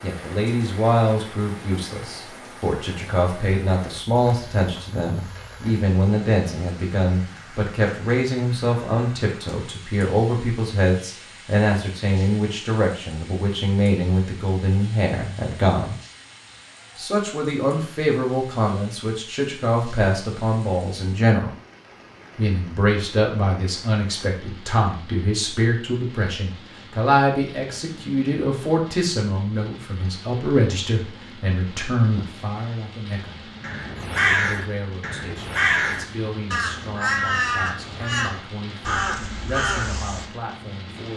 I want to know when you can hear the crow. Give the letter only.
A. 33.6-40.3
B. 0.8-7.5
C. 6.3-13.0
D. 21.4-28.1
A.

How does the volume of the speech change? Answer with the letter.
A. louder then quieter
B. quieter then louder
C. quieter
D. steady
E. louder
C.